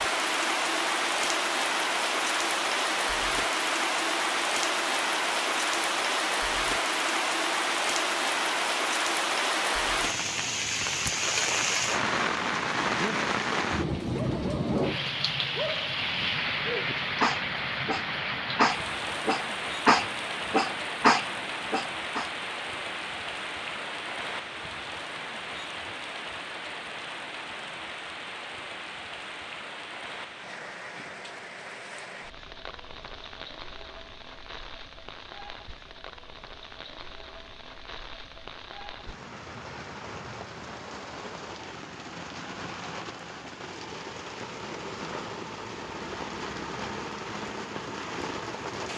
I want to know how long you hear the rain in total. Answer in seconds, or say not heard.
49 s.